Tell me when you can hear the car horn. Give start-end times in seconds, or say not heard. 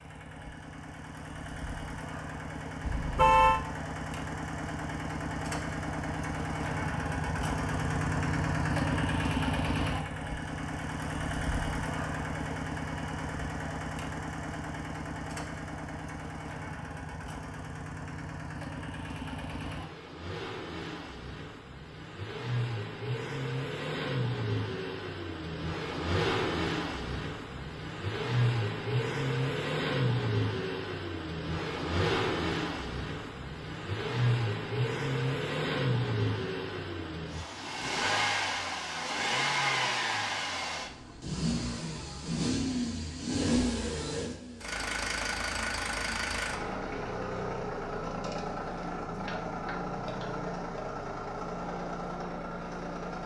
2.8-3.6.